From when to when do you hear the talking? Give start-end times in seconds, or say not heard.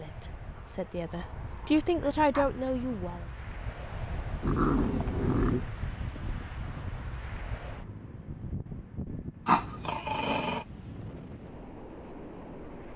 0.0-3.2.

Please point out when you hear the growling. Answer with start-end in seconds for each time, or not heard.
0.6-2.5, 4.4-5.7, 9.4-10.7.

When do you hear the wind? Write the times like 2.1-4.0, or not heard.
0.0-12.9.